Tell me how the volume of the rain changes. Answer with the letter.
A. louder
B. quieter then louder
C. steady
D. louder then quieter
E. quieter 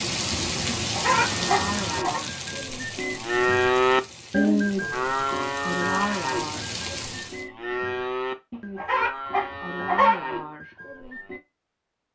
B.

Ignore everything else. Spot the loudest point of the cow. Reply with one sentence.
The loudest moment of the cow is at 4 seconds.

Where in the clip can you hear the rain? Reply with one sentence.
The rain can be heard from 0.0 to 7.5 s.